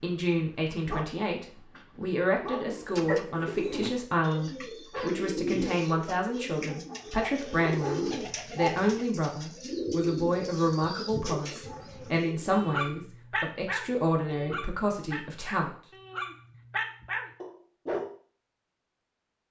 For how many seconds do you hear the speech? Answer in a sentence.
The speech can be heard for 16 seconds in total.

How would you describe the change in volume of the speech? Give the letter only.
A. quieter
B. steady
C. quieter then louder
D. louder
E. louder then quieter
B.